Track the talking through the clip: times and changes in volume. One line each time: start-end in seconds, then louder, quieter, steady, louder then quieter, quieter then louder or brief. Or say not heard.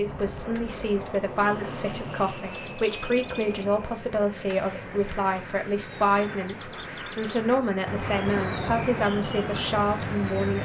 0.0-10.6 steady.